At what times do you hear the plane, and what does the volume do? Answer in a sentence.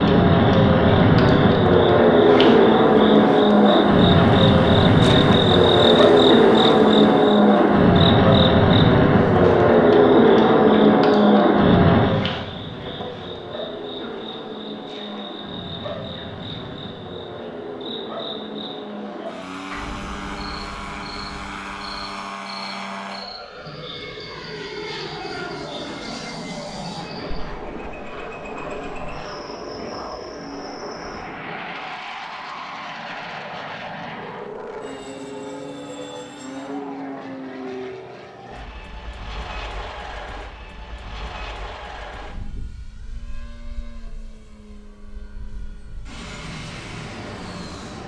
You can hear the plane from 0.0 to 48.0 s, getting quieter.